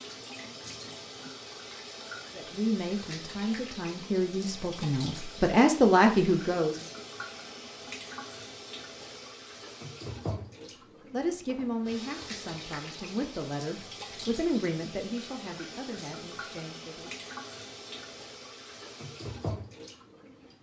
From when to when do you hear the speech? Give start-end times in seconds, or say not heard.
2.4-6.8, 11.1-17.1.